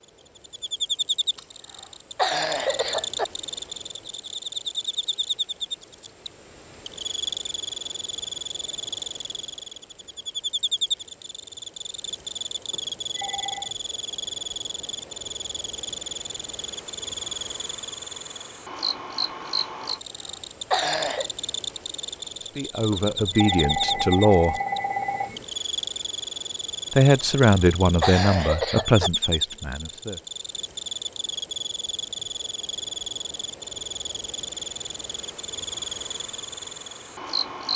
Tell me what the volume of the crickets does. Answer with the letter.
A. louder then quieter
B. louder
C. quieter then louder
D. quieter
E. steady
E.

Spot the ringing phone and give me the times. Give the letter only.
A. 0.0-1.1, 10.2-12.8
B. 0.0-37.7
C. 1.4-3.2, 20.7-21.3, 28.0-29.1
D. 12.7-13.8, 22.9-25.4
D.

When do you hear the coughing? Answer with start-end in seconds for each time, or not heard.
1.4-3.2, 20.7-21.3, 28.0-29.1.